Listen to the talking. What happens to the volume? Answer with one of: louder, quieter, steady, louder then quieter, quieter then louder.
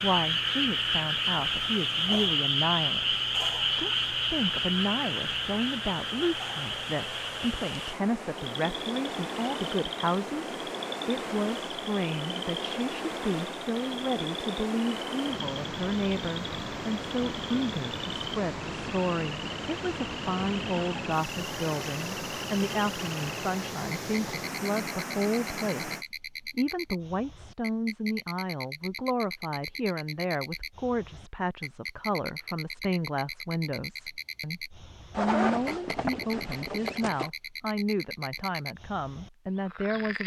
steady.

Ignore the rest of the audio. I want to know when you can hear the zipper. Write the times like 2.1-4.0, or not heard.
35.1-37.3.